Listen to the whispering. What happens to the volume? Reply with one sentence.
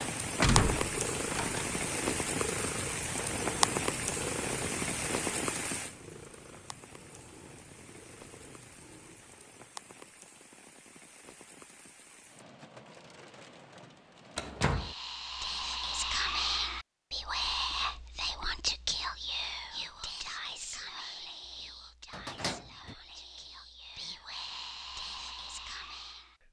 The volume of the whispering goes down, then up.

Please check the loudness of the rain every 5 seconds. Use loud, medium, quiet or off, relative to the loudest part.
loud, medium, quiet, off, off, off.